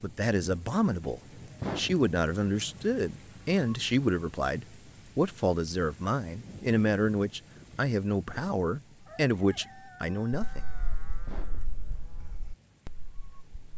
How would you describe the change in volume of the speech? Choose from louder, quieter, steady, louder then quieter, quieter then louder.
steady.